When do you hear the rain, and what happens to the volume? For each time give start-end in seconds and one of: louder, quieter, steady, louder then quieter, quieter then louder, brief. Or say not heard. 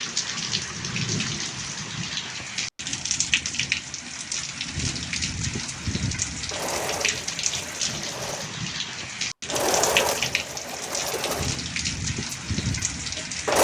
0.0-13.5 steady.